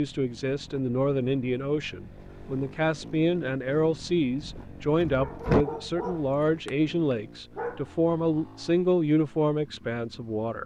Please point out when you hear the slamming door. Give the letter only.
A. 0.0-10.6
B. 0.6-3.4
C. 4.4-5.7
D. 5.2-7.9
C.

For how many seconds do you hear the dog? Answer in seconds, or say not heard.
3 s.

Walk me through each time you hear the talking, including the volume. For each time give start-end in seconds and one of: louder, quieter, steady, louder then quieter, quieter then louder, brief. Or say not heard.
0.0-10.6 steady.